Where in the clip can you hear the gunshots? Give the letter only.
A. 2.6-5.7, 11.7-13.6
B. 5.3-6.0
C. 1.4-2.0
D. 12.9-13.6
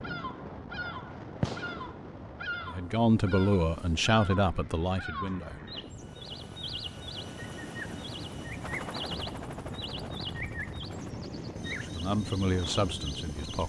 C.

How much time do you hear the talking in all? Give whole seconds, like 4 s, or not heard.
5 s.